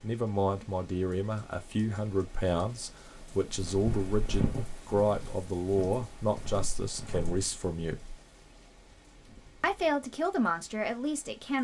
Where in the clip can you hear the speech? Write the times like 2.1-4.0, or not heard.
0.0-8.2, 9.6-11.5.